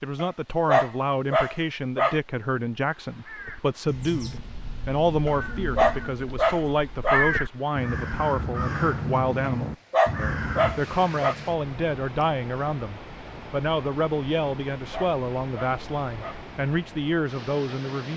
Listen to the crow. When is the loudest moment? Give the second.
7 s.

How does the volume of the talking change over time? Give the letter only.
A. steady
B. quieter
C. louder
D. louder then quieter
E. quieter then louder
A.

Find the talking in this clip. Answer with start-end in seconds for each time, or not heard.
0.0-18.1.